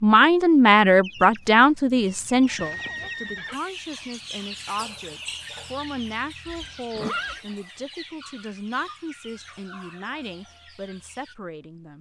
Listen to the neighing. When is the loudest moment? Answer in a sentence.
The loudest moment of the neighing is at 7 seconds.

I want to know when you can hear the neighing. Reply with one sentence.
The neighing can be heard from 2.5 to 3.6 s and from 6.5 to 7.4 s.